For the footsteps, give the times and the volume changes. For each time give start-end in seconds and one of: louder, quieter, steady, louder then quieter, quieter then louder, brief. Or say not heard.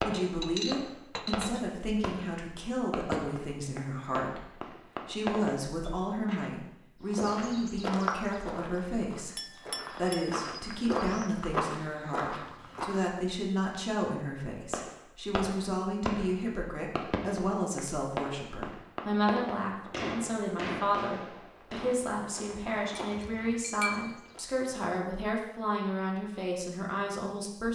7.0-13.0 quieter then louder
21.6-24.5 brief.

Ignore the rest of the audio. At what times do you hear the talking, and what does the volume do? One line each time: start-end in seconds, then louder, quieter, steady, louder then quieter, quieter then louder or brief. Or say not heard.
0.0-27.7 steady.